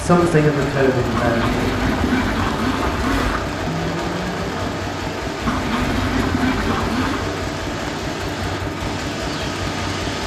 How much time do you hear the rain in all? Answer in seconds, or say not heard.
10 s.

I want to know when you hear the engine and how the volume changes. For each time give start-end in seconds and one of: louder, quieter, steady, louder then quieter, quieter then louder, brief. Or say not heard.
0.0-10.2 steady.